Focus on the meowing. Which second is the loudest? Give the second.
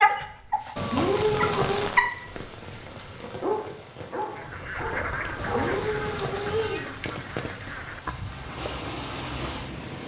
1 s.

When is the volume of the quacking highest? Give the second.
5 s.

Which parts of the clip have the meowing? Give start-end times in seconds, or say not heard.
0.8-1.9, 5.3-6.8.